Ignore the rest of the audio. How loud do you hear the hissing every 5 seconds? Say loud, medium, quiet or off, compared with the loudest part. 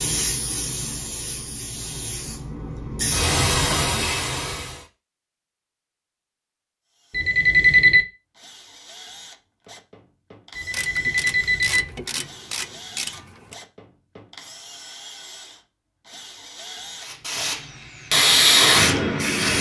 medium, off, off, loud.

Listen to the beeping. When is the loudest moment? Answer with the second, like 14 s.
8 s.